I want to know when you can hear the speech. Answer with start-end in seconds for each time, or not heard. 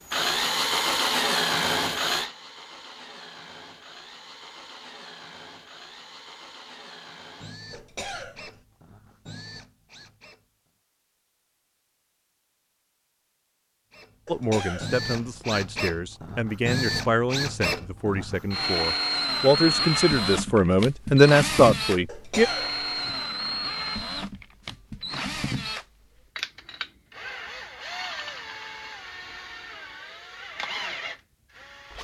14.2-22.4.